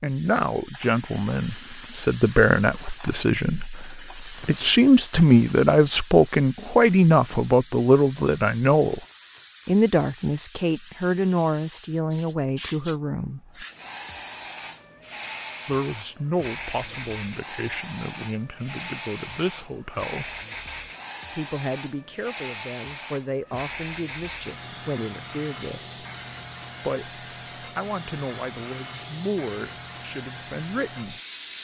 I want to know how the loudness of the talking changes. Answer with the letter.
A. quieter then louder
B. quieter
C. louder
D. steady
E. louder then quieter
B.